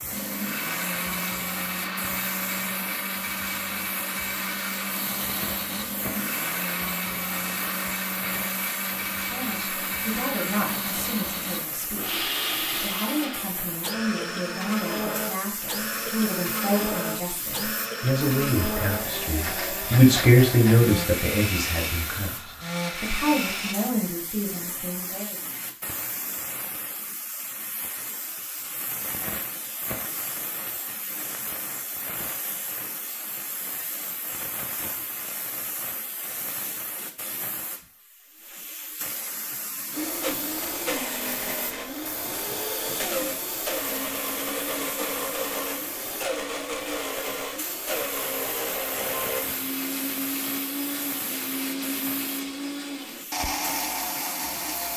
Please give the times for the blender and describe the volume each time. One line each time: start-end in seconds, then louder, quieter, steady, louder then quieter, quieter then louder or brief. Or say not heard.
0.0-23.8 steady
39.9-54.9 steady.